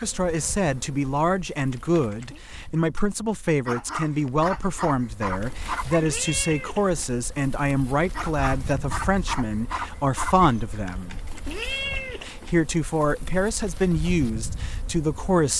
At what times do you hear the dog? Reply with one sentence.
The dog can be heard from 3.6 to 6.2 s and from 8.1 to 10.8 s.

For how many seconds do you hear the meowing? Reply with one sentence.
The meowing can be heard for 4 seconds in total.